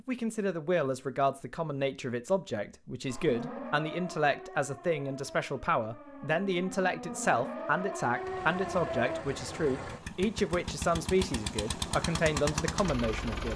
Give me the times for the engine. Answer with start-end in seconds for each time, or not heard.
8.2-13.5.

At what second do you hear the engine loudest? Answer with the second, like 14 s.
12 s.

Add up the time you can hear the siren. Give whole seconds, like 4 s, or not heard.
6 s.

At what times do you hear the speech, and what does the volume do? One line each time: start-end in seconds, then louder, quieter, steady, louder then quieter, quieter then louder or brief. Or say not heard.
0.1-13.5 steady.